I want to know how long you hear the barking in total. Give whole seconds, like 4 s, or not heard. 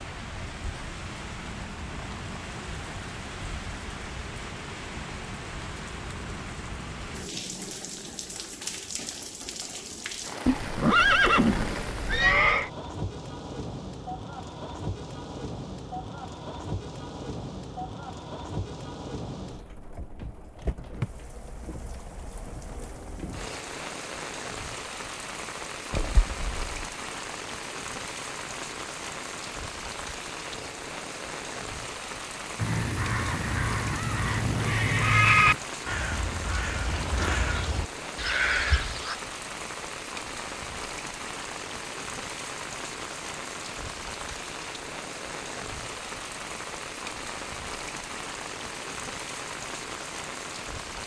not heard.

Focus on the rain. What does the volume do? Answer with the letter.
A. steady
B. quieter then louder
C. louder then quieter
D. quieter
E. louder
A.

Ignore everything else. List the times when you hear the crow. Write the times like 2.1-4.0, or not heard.
32.5-39.1.